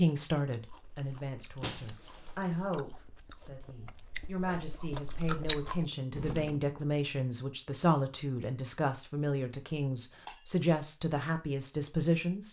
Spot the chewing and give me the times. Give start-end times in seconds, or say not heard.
0.5-6.6.